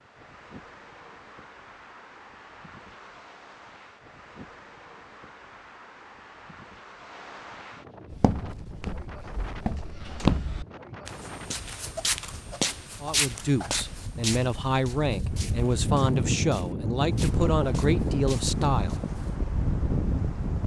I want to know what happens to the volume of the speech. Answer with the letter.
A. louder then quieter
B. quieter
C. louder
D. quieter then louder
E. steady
E.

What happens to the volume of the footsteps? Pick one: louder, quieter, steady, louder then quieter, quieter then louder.
quieter.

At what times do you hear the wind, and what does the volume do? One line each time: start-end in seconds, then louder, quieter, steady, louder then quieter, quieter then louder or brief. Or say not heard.
0.0-20.6 louder.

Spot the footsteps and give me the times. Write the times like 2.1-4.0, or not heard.
8.1-19.4.